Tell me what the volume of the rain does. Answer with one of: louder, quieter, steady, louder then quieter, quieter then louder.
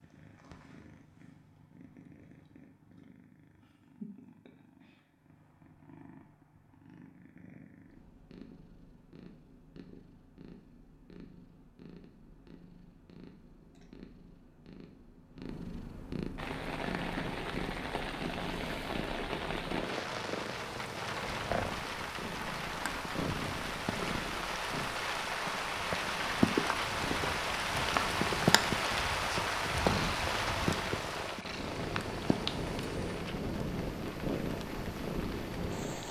louder then quieter.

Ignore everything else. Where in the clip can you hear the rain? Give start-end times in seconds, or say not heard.
16.4-36.0.